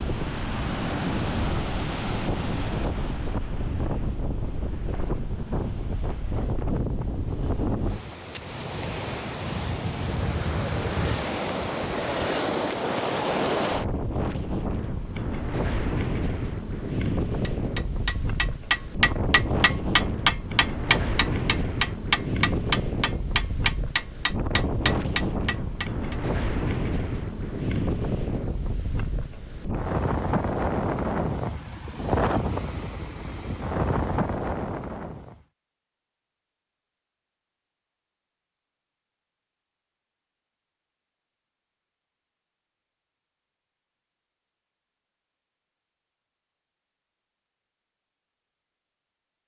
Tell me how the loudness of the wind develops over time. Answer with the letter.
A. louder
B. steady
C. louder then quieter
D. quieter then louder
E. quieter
B.